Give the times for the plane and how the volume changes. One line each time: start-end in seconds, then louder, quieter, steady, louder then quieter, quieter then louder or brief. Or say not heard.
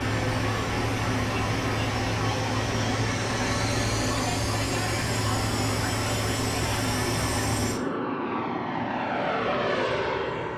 0.0-10.5 steady.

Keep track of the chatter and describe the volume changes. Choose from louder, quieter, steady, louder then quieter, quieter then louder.
steady.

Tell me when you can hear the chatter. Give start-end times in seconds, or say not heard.
0.2-7.5.